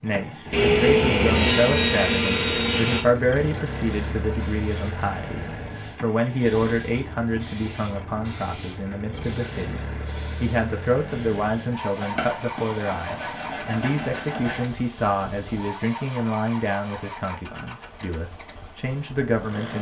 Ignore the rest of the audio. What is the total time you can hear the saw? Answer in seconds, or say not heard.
5 s.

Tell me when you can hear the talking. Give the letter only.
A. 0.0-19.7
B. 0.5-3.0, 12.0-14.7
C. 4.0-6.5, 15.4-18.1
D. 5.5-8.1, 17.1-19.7
A.